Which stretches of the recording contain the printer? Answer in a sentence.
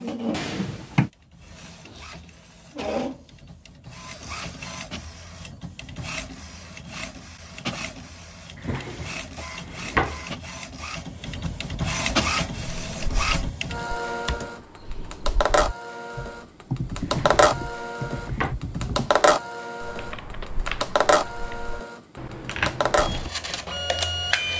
You can hear the printer from 0.0 to 24.5 s.